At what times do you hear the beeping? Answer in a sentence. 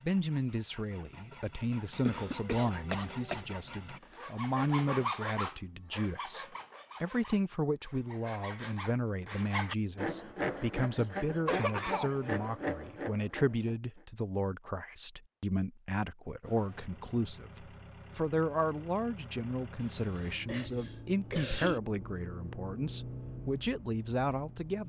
The beeping can't be heard in this clip.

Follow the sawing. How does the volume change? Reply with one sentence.
The loudness of the sawing goes down, then up.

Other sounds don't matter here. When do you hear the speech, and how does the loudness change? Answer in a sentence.
The speech can be heard from 0.0 to 24.8 s, at a steady volume.